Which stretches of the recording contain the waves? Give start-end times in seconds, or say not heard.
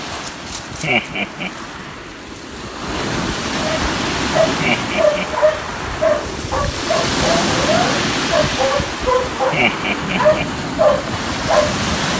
0.0-12.1.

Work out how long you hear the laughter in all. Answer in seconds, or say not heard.
2 s.